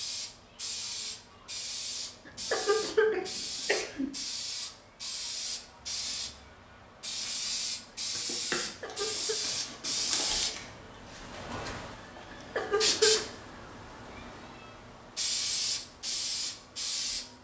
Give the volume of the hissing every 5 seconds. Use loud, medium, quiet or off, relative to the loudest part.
medium, loud, loud, loud.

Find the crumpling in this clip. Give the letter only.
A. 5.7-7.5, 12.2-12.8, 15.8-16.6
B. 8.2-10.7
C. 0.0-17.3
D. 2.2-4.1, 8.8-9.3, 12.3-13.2
B.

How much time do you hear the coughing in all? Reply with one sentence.
You can hear the coughing for 3 seconds altogether.